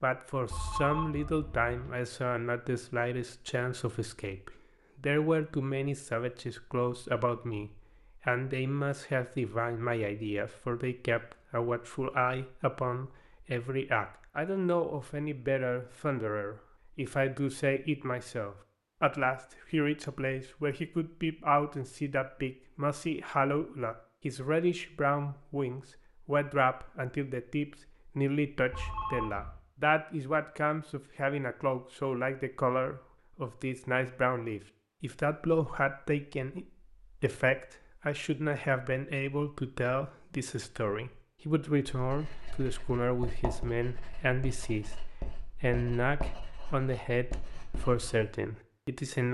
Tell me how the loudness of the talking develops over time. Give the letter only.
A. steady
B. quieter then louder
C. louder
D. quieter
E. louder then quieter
A.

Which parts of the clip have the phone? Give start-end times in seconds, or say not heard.
0.5-1.9, 28.7-29.6.